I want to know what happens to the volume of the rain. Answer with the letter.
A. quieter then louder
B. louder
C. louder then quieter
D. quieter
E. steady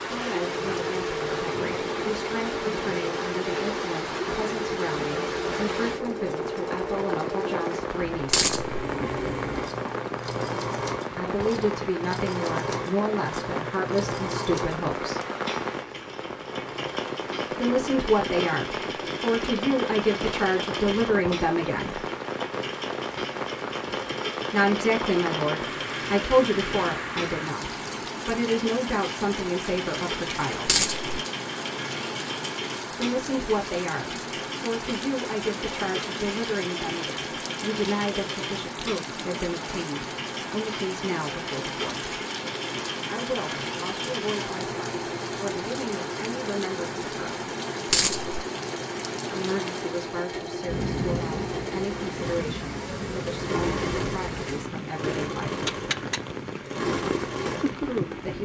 E.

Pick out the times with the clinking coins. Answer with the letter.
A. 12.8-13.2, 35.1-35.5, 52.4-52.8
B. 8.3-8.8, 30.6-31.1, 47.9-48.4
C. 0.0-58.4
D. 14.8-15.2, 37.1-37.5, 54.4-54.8
B.